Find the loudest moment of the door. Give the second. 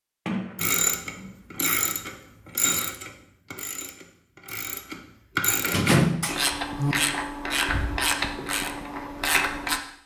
6 s.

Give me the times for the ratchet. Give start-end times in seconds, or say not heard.
0.6-9.8.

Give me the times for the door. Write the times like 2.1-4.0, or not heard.
0.2-1.4, 5.7-7.0.